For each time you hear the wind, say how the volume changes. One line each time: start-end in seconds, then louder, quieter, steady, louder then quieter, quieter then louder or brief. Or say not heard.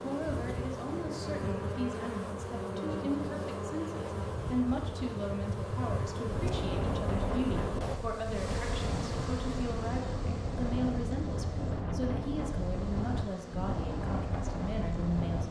5.8-15.4 steady.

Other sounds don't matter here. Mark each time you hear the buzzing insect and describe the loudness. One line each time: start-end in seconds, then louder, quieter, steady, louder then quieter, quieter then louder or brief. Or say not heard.
0.0-15.4 quieter.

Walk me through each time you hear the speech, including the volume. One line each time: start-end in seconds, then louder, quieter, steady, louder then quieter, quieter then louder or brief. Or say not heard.
0.0-15.4 steady.